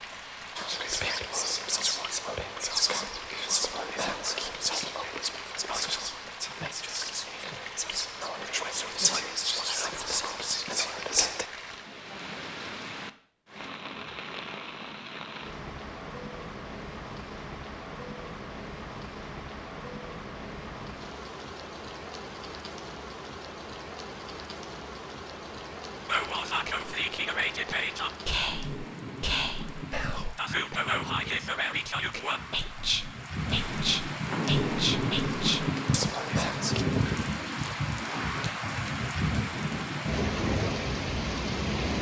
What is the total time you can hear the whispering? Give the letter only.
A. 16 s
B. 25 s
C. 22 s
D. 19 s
C.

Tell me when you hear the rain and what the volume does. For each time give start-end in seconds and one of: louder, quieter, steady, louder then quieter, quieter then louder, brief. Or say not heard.
0.0-41.9 louder.